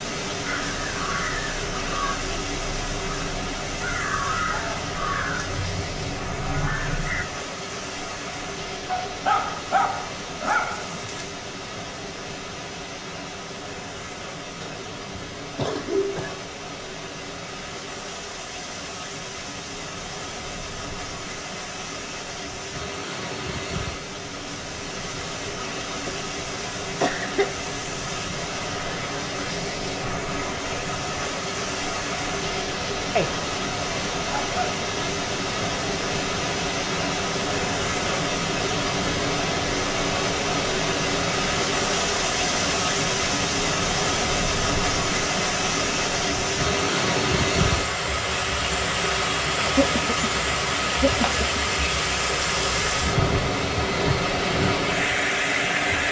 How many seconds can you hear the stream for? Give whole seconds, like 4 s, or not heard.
56 s.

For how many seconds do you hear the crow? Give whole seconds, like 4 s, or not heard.
7 s.